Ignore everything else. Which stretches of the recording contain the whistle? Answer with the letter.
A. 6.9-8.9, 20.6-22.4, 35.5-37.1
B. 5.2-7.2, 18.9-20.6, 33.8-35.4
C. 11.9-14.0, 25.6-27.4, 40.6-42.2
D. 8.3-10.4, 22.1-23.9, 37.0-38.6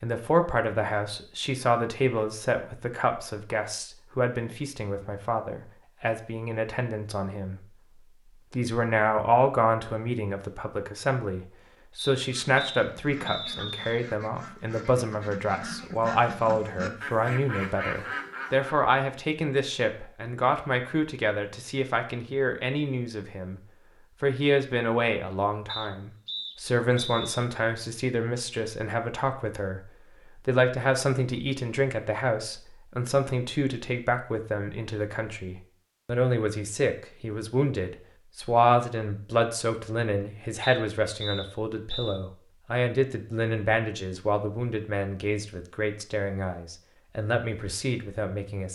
C.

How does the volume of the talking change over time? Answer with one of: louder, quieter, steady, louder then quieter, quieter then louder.
steady.